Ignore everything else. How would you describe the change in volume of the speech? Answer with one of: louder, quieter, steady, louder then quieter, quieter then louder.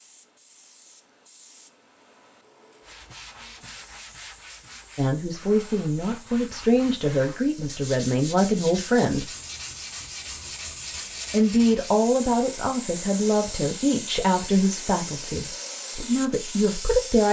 steady.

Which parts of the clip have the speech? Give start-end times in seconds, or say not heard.
5.0-9.3, 11.3-17.2.